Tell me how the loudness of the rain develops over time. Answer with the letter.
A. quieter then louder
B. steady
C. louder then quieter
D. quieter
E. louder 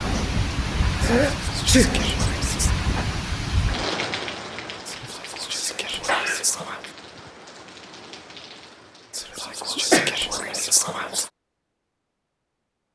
D.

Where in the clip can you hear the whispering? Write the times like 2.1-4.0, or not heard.
1.1-2.8, 4.8-6.9, 9.1-11.3.